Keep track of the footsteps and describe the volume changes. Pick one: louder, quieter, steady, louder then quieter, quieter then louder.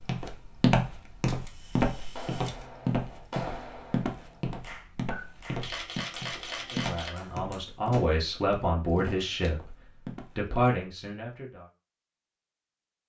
quieter.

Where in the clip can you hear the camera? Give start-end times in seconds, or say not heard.
1.2-2.6, 5.1-7.1, 8.8-9.5.